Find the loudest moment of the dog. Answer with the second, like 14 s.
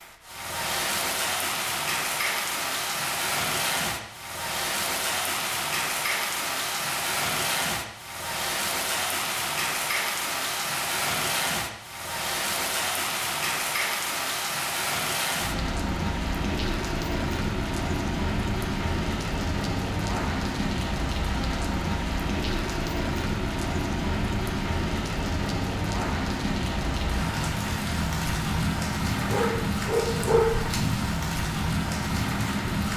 30 s.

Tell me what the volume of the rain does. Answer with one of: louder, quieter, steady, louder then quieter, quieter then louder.
steady.